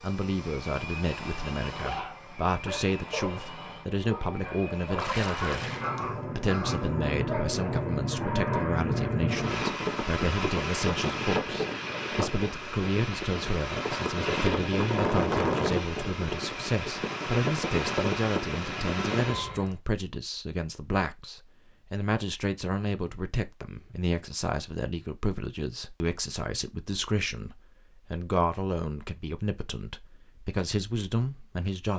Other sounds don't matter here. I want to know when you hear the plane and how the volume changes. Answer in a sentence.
The plane can be heard from 0.0 to 19.8 s, getting louder.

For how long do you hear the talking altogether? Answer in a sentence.
You can hear the talking for 31 seconds altogether.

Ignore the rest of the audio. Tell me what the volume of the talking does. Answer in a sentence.
The loudness of the talking stays about the same.